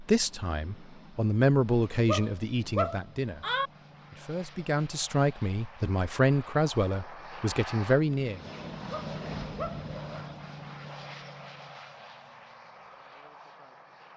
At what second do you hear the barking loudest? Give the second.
3 s.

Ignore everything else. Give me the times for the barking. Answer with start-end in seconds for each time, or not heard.
2.0-3.7, 8.9-10.3.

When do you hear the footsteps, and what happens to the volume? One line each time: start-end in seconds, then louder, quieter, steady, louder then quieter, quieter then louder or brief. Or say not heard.
not heard.